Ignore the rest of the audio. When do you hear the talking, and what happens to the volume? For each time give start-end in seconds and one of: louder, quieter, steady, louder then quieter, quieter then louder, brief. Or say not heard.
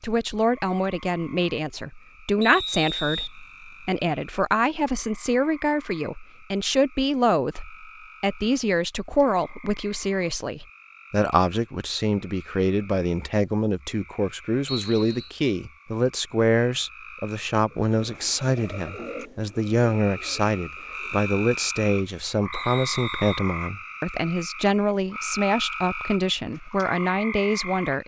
0.0-28.0 steady.